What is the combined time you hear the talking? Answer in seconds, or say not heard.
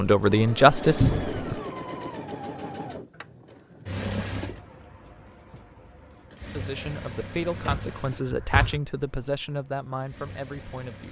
6 s.